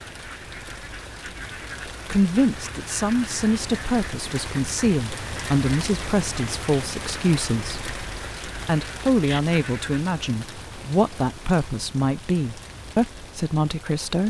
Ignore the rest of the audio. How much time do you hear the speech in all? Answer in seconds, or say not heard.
11 s.